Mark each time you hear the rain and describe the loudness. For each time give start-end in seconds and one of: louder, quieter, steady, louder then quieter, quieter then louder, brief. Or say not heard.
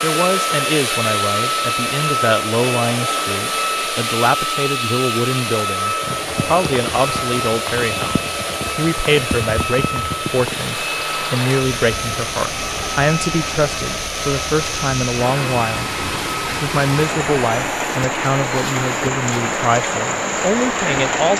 6.0-21.3 louder.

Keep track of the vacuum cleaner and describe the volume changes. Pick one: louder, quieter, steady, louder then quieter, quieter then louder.
quieter.